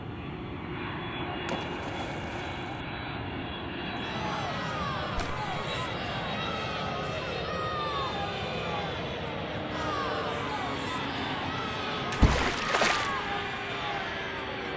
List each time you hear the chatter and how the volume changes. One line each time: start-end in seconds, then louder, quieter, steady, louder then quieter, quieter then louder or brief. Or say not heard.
3.8-14.7 steady.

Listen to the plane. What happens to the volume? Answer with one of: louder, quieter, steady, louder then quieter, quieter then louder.
steady.